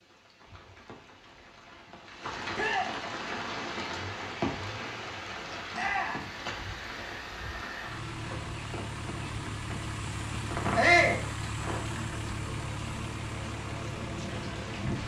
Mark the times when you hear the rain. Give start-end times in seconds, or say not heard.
0.0-15.0.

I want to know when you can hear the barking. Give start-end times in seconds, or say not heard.
not heard.